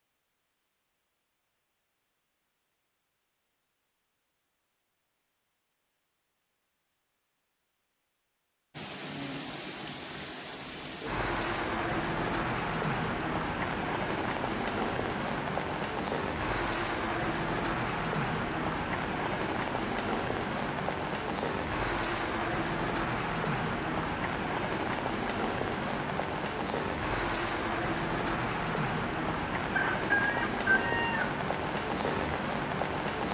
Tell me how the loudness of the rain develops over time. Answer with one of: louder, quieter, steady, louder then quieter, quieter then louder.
steady.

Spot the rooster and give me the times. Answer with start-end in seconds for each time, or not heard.
29.8-31.3.